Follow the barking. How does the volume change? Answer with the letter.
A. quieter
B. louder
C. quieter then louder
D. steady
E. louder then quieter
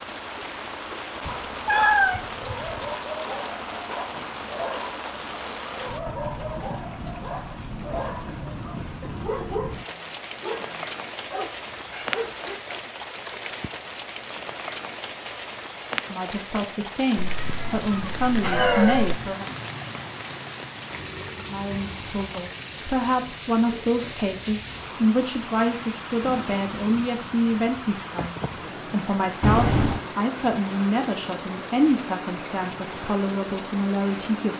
D.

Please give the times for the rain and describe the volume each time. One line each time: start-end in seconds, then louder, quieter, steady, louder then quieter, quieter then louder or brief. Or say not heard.
0.0-34.5 steady.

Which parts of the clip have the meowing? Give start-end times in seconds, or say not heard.
1.2-2.9, 17.1-19.1, 29.4-30.1.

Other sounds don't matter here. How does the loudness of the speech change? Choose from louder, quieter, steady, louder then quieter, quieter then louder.
steady.